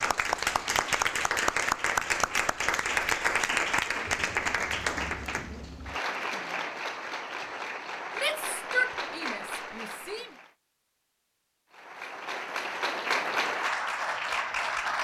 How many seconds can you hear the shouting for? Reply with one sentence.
You can hear the shouting for 2 seconds altogether.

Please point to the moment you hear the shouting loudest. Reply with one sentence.
The volume of the shouting peaks at 9 seconds.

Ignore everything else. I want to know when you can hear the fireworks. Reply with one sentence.
The fireworks can't be heard in this clip.